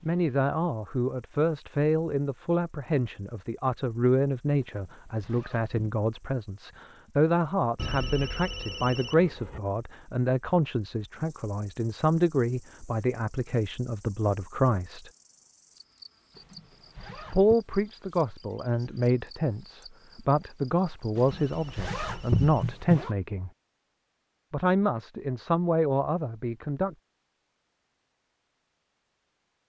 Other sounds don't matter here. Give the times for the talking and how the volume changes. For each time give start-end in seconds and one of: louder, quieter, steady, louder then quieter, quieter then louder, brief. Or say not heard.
0.0-15.1 steady
17.3-23.5 steady
24.5-26.9 brief.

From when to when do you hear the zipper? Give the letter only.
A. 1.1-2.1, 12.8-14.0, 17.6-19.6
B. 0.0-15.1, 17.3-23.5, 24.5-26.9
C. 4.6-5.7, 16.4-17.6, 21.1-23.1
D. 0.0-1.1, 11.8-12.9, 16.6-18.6
C.